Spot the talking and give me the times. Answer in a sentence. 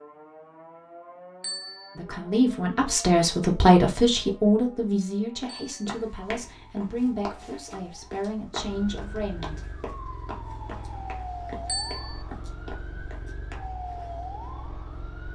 You can hear the talking from 1.9 to 9.8 s.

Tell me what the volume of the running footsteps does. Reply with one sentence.
The volume of the running footsteps goes down.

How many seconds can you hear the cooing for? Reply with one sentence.
The cooing can't be heard in this clip.